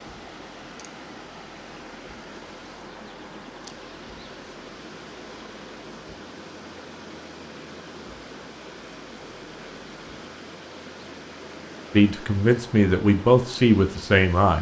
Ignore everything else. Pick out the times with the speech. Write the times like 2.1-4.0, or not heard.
11.9-14.5.